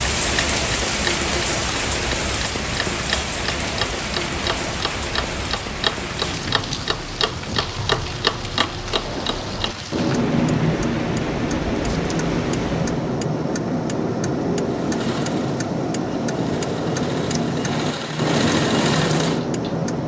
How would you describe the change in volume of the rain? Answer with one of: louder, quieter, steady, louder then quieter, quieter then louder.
quieter.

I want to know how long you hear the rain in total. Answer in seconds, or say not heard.
13 s.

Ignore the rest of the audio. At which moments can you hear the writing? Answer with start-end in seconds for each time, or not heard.
not heard.